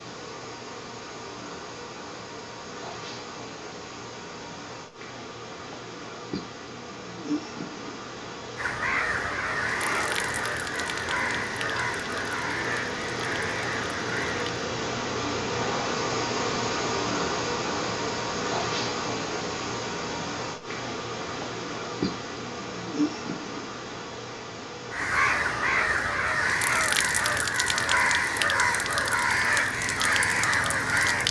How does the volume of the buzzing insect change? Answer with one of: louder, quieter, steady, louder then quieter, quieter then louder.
louder then quieter.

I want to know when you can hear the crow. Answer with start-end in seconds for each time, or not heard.
8.6-14.7, 24.9-31.2.